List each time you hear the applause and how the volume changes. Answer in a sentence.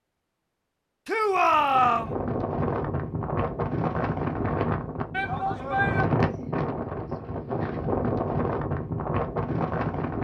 The applause can't be heard in this clip.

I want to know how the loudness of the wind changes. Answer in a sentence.
The volume of the wind stays about the same.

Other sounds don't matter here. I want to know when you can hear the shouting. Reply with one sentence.
The shouting can be heard from 1.1 to 2.1 s and from 5.1 to 6.0 s.